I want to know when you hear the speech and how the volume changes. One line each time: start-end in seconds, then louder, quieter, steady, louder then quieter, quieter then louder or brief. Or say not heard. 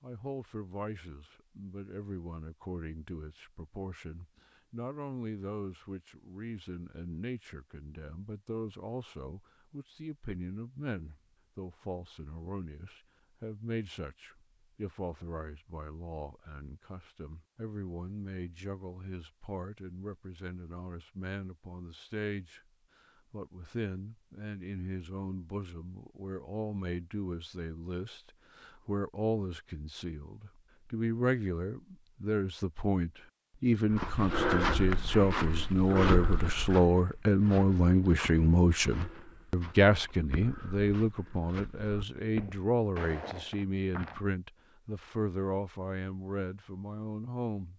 0.0-22.6 steady
23.3-47.7 louder then quieter.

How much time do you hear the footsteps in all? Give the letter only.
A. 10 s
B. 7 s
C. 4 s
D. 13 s
A.